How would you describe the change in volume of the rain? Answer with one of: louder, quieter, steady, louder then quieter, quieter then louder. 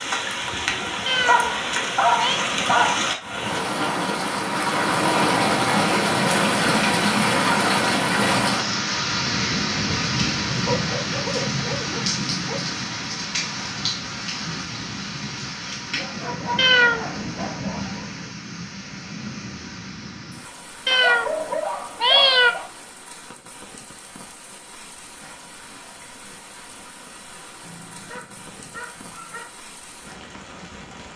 quieter.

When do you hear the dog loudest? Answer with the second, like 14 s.
2 s.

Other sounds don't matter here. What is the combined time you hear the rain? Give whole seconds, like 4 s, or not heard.
31 s.